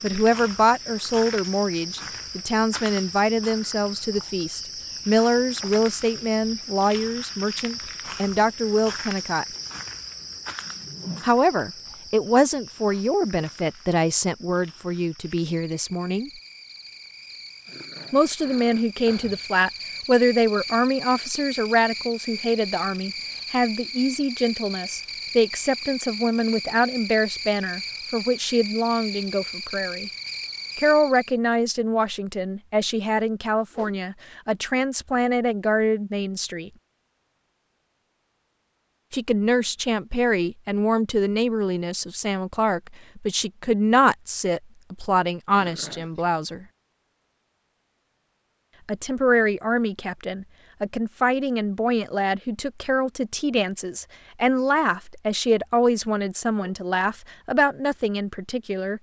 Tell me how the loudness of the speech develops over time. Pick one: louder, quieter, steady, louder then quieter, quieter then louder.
steady.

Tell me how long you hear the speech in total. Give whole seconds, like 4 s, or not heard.
50 s.